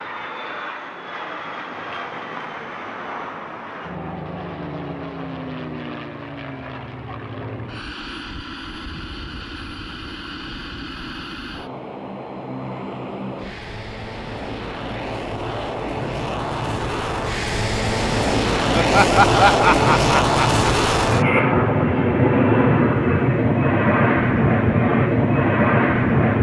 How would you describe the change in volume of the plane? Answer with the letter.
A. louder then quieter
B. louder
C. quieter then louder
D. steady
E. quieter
B.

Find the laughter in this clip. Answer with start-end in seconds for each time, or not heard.
18.7-20.6.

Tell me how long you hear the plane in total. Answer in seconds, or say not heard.
26 s.